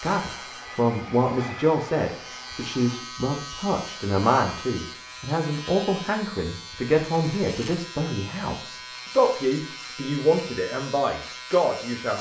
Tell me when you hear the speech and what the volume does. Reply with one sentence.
You can hear the speech from 0.0 to 12.1 s, at a steady volume.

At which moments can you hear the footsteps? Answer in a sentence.
The footsteps can't be heard in this clip.